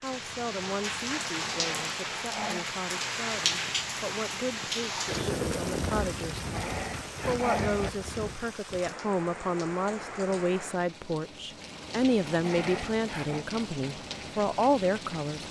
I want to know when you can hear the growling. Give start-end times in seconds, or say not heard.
1.4-2.6, 6.3-7.9, 12.2-13.4.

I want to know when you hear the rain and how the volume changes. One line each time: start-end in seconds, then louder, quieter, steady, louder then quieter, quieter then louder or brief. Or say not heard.
0.0-15.4 quieter.